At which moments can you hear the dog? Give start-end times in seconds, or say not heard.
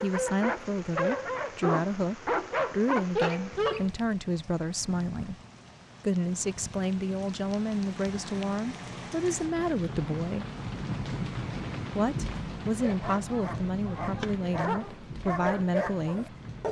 0.0-3.9, 12.7-16.6.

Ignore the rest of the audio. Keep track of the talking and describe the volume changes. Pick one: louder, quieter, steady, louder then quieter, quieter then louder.
steady.